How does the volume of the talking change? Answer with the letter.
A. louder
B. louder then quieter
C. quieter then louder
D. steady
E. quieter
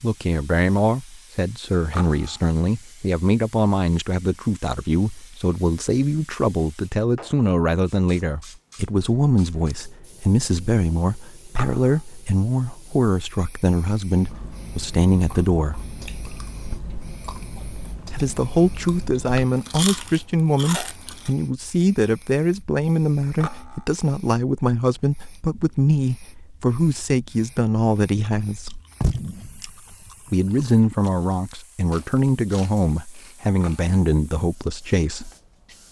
D.